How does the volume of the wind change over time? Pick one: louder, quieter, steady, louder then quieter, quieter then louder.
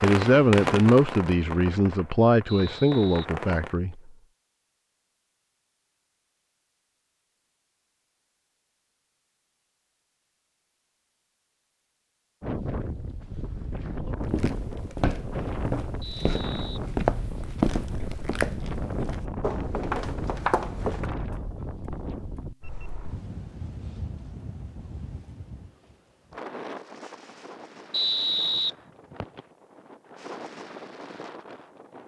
quieter.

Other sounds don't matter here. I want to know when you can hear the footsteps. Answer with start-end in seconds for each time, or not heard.
14.3-21.1.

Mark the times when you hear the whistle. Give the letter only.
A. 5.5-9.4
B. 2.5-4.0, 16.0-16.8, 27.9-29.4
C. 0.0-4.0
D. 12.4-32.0
B.